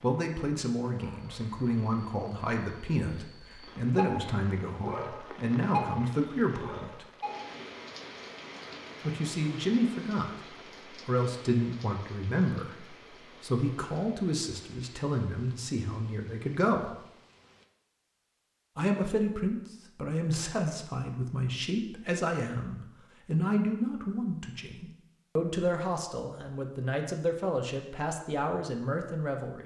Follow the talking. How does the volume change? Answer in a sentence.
The loudness of the talking stays about the same.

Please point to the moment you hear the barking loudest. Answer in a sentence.
The loudest moment of the barking is at 6 seconds.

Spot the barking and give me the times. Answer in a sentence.
The barking can be heard from 0.8 to 7.6 s.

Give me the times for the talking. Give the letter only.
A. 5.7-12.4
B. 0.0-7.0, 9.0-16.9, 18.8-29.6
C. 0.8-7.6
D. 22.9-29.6
B.